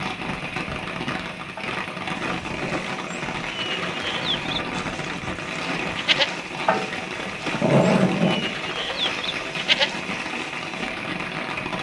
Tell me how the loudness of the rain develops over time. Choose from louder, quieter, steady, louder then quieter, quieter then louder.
steady.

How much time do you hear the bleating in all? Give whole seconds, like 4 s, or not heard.
9 s.